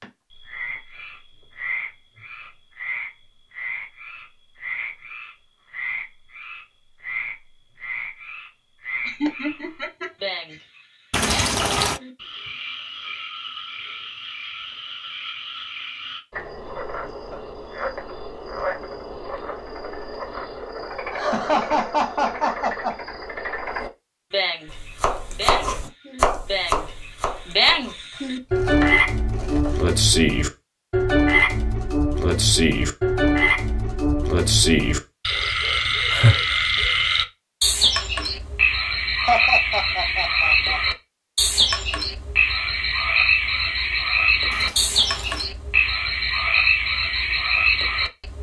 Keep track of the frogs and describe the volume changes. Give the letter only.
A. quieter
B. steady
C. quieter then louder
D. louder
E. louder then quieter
D.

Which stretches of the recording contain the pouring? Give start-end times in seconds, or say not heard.
11.1-12.0, 44.5-45.5.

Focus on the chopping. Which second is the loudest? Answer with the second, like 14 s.
26 s.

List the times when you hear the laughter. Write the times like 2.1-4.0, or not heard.
9.1-10.6, 21.1-22.9, 39.2-40.8.